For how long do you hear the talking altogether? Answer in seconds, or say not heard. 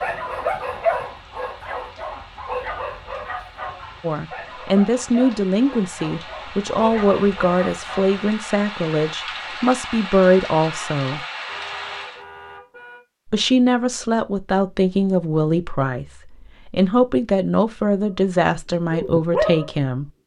14 s.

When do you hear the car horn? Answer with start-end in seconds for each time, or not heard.
11.4-13.0.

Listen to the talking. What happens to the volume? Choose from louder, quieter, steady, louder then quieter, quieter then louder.
steady.